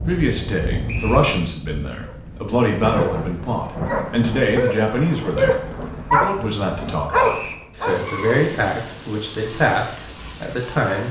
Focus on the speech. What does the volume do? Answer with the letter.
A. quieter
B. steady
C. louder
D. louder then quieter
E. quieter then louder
B.